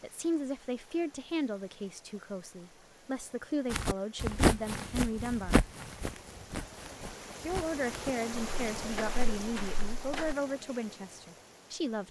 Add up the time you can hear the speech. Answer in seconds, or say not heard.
10 s.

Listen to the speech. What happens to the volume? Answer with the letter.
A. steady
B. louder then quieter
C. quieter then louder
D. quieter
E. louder
A.